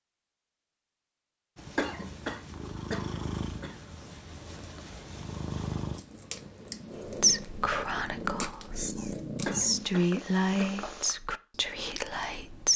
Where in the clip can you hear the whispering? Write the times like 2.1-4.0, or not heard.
7.0-12.7.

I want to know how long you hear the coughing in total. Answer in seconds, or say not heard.
3 s.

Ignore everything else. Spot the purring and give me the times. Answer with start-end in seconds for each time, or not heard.
1.6-11.2.